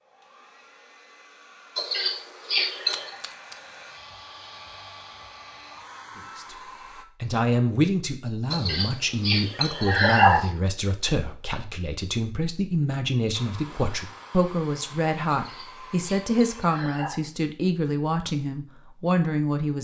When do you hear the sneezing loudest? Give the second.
10 s.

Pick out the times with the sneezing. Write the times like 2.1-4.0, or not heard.
1.8-3.1, 8.5-10.5, 15.3-17.2.